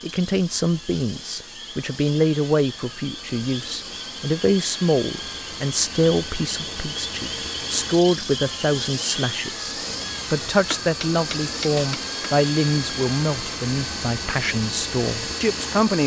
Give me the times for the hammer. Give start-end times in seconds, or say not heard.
10.7-12.1.